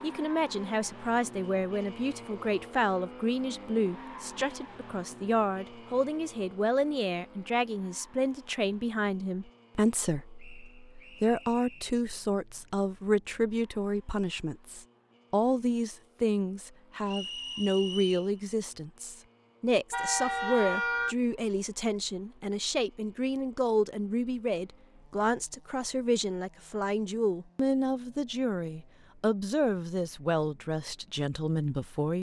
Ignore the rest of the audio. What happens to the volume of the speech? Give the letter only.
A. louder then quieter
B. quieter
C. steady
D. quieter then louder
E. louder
C.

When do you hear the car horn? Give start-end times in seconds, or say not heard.
19.9-21.1.